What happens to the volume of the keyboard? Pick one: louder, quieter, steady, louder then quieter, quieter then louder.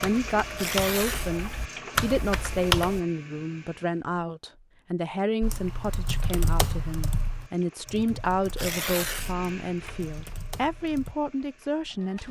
louder then quieter.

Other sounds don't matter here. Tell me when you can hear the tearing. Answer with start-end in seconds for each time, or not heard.
0.5-1.3, 8.4-9.3.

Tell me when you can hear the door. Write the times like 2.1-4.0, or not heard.
not heard.